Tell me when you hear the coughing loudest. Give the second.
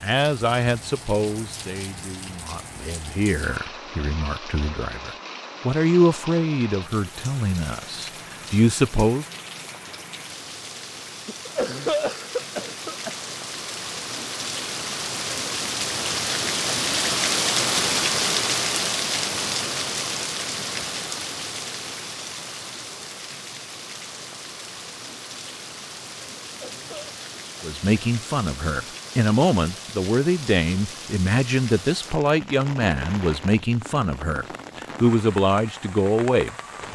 12 s.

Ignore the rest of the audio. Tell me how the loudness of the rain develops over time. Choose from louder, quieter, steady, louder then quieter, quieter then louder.
louder then quieter.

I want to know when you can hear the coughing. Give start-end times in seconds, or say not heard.
11.2-13.2, 26.4-27.1.